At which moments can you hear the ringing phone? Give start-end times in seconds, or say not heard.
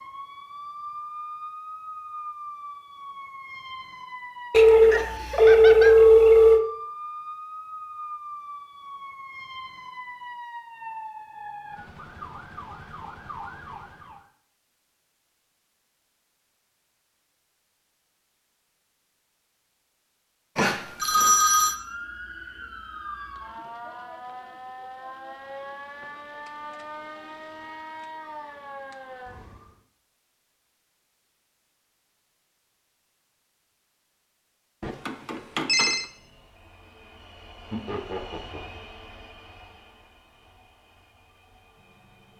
4.5-6.6, 20.6-21.8, 34.8-36.0.